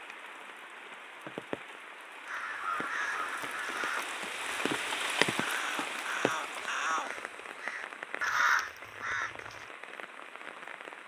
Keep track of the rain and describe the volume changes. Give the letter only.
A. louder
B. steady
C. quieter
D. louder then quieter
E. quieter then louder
D.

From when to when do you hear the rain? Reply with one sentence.
You can hear the rain from 0.0 to 11.0 s.